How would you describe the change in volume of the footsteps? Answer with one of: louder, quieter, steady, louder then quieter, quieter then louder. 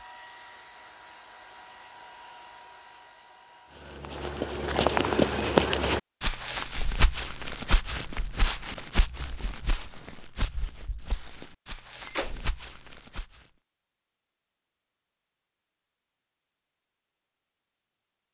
quieter.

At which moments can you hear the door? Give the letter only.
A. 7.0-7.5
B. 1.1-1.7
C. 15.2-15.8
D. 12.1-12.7
D.